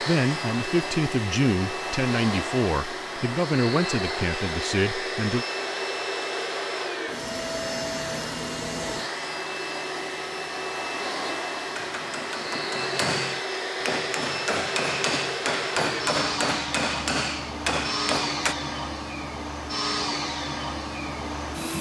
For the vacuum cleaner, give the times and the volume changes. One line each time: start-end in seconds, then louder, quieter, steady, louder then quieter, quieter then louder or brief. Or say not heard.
0.0-21.7 steady.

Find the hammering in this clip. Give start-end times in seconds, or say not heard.
11.8-18.6.